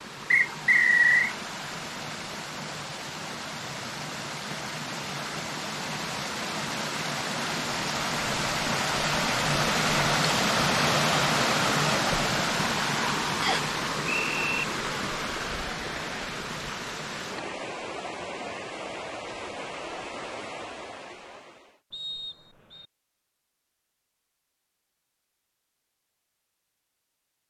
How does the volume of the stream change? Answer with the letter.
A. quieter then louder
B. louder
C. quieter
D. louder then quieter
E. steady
D.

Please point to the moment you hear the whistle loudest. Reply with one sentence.
The loudest moment of the whistle is at 1 second.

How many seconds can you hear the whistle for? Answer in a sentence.
You can hear the whistle for 3 seconds altogether.